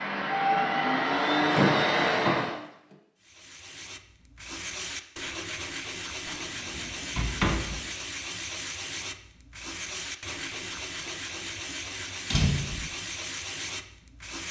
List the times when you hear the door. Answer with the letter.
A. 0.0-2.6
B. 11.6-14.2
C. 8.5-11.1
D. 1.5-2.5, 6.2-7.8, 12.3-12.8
D.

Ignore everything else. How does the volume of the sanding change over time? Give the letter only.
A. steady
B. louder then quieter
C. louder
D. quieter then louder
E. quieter
A.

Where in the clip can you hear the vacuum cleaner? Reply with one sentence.
You can hear the vacuum cleaner from 0.0 to 2.6 s.